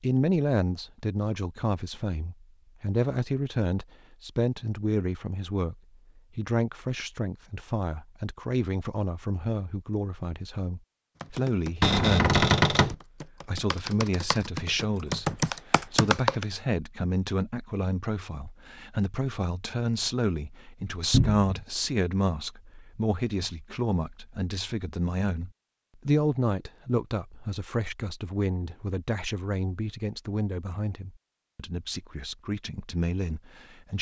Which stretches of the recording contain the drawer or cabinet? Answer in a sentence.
You can hear the drawer or cabinet from 11.8 to 12.9 s and from 21.1 to 21.6 s.